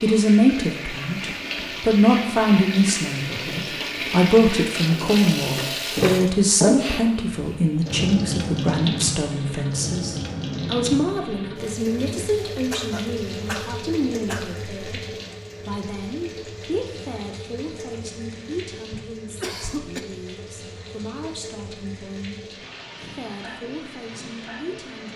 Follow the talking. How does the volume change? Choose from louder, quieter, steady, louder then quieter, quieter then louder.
quieter.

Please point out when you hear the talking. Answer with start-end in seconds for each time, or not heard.
0.0-25.1.